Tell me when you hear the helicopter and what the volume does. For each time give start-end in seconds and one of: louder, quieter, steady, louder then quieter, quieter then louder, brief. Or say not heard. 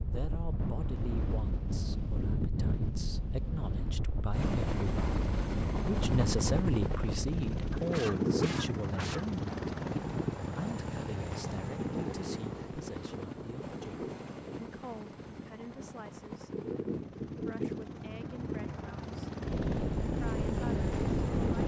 4.3-21.6 quieter then louder.